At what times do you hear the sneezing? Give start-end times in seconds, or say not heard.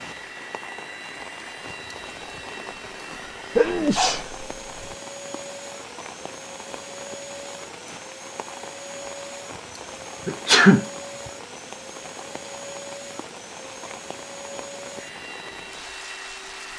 3.5-4.9, 10.2-10.8.